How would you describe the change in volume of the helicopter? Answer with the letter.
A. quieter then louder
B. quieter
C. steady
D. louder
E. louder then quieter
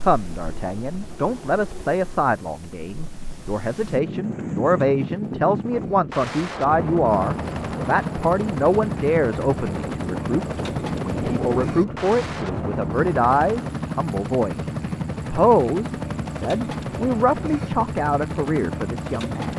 D.